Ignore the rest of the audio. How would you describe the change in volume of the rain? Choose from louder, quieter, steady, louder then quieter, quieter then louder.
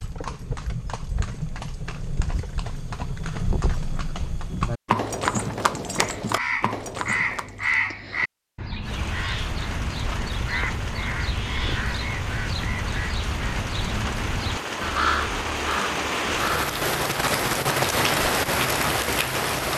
louder.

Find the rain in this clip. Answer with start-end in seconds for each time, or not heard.
8.8-19.7.